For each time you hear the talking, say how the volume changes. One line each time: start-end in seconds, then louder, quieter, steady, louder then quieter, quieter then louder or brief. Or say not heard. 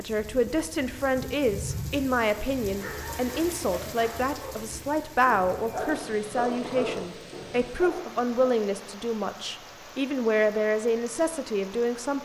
0.0-12.2 steady.